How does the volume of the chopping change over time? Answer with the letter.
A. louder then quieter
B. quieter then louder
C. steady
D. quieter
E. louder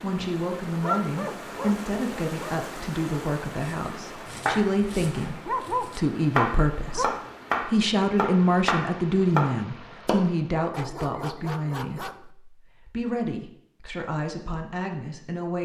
E.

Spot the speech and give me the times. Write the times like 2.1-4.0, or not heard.
0.0-15.6.